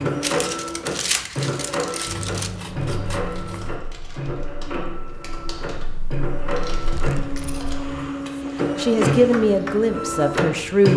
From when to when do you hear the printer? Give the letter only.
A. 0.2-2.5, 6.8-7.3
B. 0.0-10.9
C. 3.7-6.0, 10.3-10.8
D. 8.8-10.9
B.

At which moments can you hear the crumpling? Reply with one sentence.
You can hear the crumpling from 0.2 to 2.5 s and from 6.8 to 7.3 s.